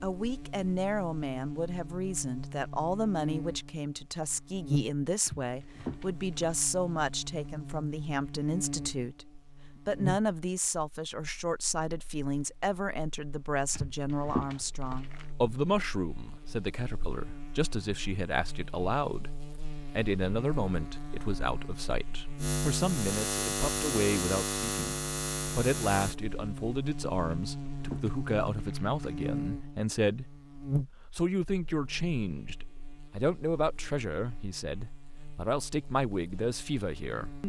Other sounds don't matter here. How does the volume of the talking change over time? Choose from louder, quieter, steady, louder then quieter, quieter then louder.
steady.